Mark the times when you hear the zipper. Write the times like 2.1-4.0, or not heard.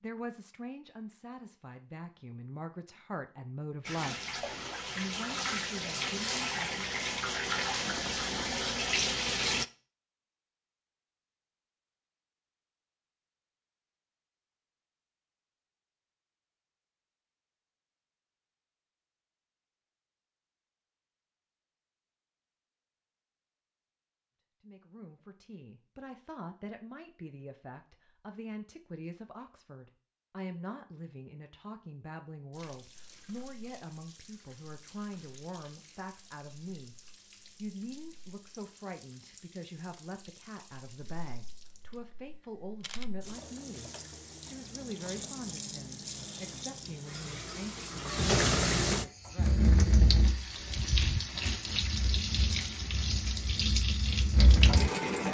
not heard.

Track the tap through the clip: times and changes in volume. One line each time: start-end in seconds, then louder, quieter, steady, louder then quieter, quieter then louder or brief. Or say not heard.
3.9-9.7 louder
32.5-55.2 louder.